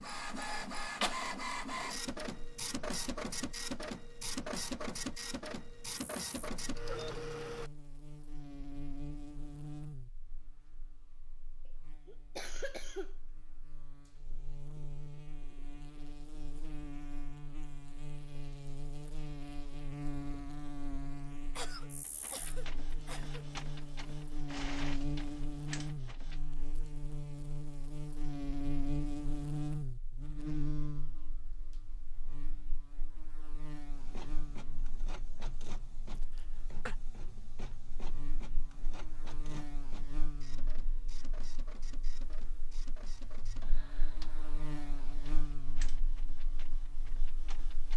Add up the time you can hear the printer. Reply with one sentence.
The printer can be heard for 26 seconds in total.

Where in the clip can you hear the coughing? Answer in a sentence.
The coughing can be heard from 12.1 to 13.2 s, from 21.6 to 23.4 s and from 36.1 to 37.0 s.